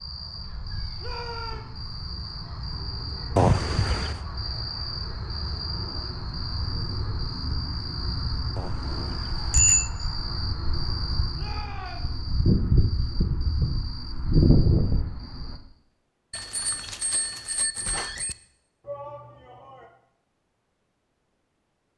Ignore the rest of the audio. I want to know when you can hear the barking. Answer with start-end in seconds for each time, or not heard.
not heard.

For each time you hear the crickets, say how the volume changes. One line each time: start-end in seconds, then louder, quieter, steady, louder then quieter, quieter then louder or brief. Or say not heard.
0.0-15.6 louder.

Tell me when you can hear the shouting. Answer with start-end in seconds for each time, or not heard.
1.0-1.6, 11.3-12.2, 18.8-19.9.